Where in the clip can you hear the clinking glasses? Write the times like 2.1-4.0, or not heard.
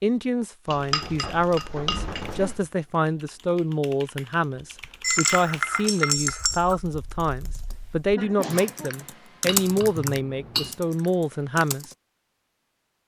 0.7-2.6, 5.0-6.8, 9.4-10.8.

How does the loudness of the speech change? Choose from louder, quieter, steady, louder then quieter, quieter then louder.
steady.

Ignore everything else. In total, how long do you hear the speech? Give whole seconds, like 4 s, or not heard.
12 s.